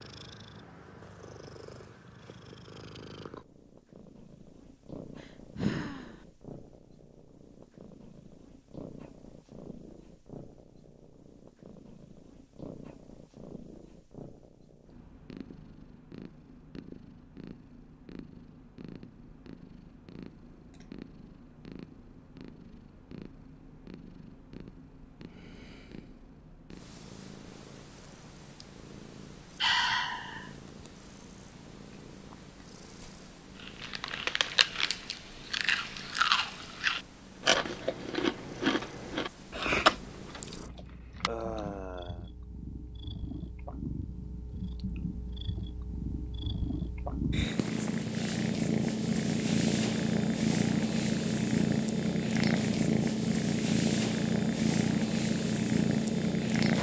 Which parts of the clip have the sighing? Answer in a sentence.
The sighing can be heard from 5.5 to 6.2 s, from 29.6 to 30.5 s and from 41.2 to 42.2 s.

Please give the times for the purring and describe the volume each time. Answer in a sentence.
The purring can be heard from 0.0 to 56.7 s, getting louder.